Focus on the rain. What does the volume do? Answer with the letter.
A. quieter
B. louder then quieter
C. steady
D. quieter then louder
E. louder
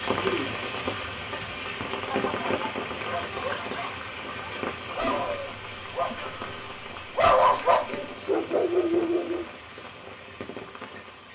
A.